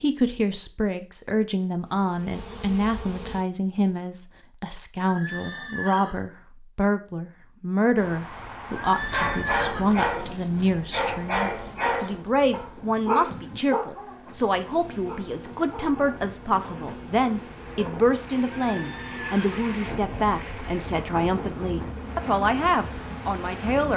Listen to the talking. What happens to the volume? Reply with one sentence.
The volume of the talking stays about the same.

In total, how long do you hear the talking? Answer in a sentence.
You can hear the talking for 24 seconds altogether.